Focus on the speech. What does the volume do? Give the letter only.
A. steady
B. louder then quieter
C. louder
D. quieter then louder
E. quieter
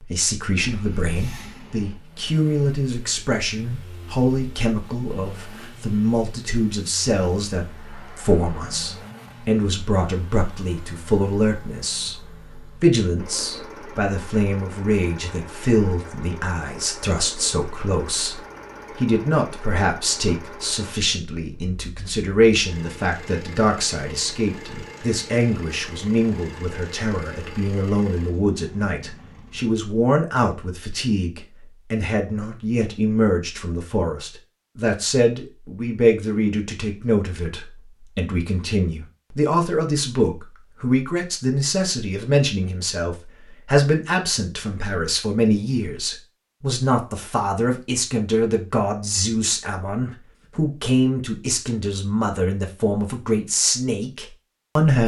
A.